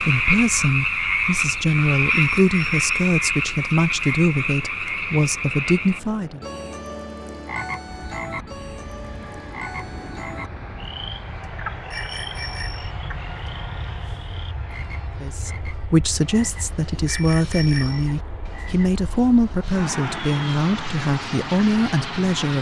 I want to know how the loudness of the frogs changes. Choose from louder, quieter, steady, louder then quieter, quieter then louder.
quieter.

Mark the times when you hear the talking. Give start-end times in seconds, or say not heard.
0.0-6.4, 15.2-22.5.